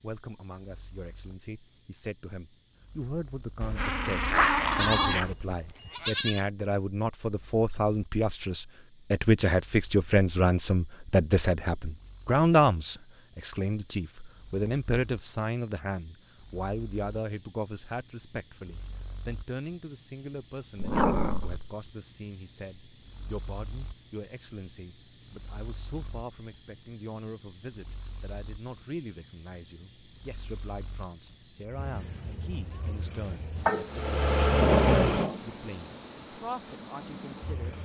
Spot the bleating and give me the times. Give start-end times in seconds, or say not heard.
4.7-6.5.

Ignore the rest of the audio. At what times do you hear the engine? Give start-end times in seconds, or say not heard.
33.9-37.7.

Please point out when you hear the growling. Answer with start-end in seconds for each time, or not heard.
3.6-5.3, 20.8-21.6, 33.6-35.4.